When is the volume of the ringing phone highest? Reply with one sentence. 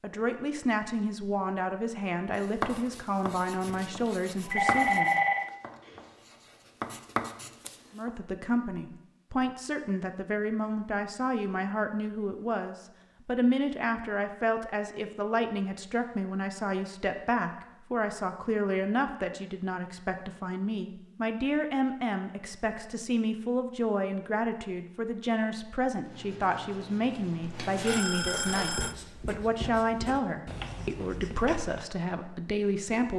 The volume of the ringing phone peaks at 5 seconds.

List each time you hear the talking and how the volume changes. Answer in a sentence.
You can hear the talking from 0.0 to 5.2 s, at a steady volume; and from 7.9 to 33.1 s, at a steady volume.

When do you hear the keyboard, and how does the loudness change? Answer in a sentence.
You can't hear the keyboard here.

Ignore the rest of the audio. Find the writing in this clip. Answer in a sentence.
The writing can be heard from 2.2 to 8.1 s and from 26.0 to 31.9 s.